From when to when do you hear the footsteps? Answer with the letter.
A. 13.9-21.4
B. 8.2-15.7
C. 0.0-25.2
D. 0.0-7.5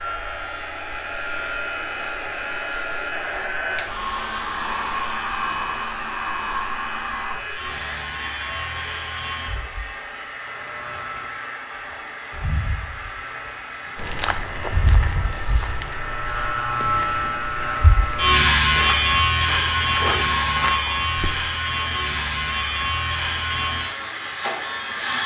A.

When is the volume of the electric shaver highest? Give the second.
19 s.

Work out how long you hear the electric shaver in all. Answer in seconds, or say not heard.
25 s.